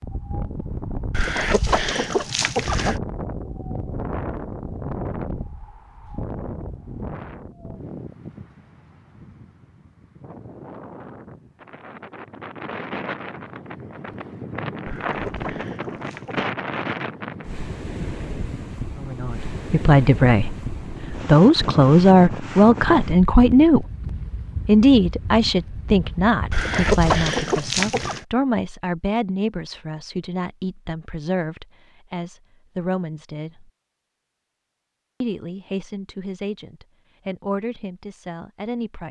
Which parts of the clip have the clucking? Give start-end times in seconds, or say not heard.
1.1-3.0, 14.8-16.4, 26.5-28.2.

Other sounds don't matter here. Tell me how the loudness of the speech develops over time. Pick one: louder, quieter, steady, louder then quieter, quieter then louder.
quieter.